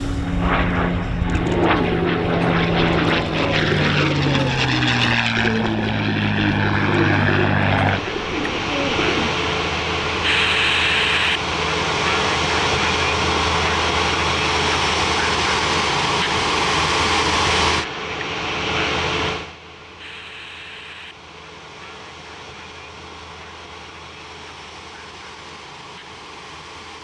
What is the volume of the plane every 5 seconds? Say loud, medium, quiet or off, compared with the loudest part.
loud, loud, loud, loud, quiet, quiet.